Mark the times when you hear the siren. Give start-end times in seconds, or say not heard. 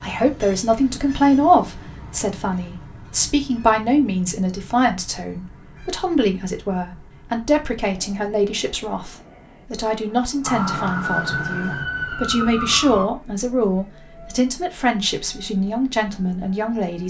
10.4-13.1.